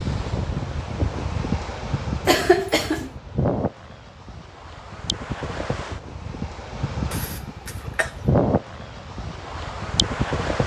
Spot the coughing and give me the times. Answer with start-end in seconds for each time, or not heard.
2.2-3.1, 7.1-8.2.